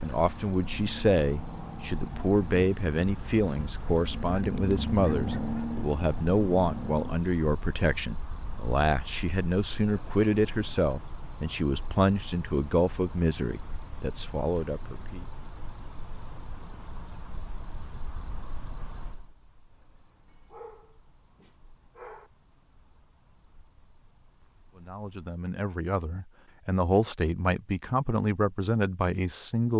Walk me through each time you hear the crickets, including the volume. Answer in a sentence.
The crickets can be heard from 0.0 to 25.4 s, getting quieter.